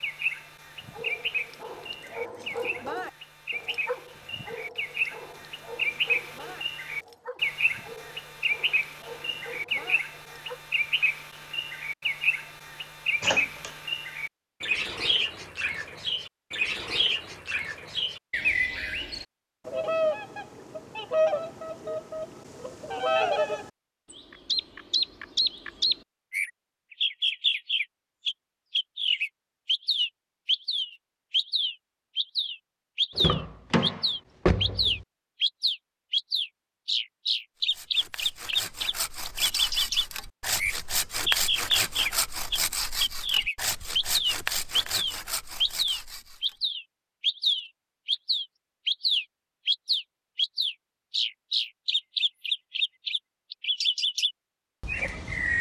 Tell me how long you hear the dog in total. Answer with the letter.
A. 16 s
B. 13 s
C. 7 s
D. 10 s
D.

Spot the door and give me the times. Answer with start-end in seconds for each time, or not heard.
13.2-13.7, 33.1-35.0.